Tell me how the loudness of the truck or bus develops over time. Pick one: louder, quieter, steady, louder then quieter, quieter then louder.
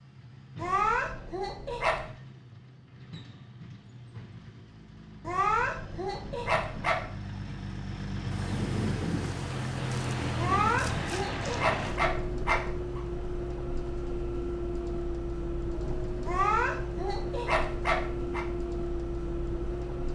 louder.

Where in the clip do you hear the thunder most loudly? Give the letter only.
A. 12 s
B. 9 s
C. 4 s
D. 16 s
B.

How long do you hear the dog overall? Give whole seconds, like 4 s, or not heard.
8 s.